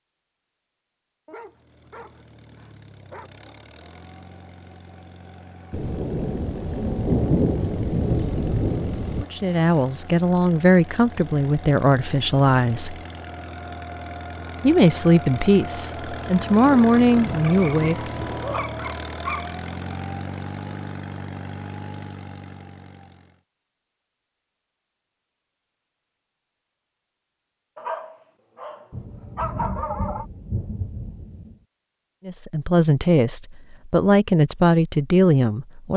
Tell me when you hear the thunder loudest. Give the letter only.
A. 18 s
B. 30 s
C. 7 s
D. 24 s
C.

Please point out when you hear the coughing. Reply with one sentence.
You can't hear the coughing here.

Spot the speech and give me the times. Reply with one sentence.
The speech can be heard from 9.2 to 12.9 s, from 14.6 to 18.1 s and from 32.2 to 35.9 s.